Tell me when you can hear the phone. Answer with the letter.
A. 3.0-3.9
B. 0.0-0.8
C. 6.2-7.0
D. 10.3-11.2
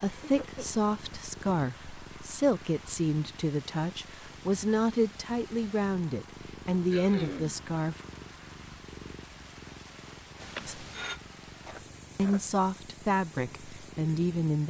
D.